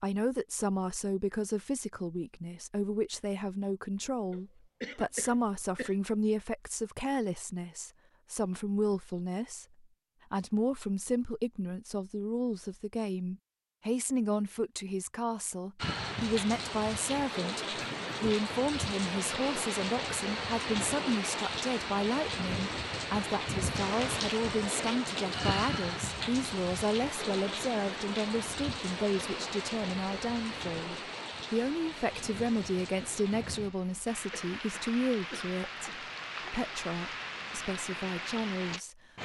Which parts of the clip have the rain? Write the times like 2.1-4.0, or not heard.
15.8-39.2.